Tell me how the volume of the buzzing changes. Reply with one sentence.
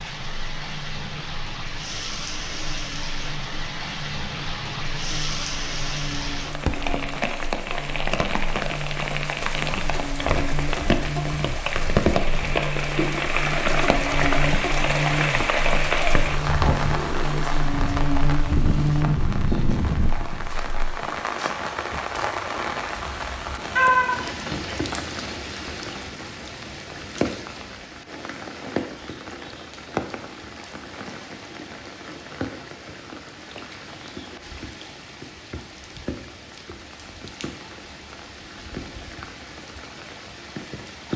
The volume of the buzzing goes up.